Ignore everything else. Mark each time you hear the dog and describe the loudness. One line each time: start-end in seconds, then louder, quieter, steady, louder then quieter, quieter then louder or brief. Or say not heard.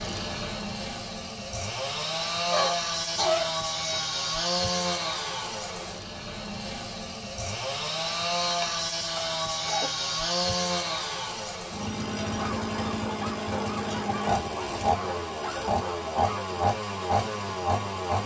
12.2-16.4 steady.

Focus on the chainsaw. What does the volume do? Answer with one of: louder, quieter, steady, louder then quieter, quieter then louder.
steady.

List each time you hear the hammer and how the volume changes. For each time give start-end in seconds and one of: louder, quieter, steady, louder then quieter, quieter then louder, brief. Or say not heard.
not heard.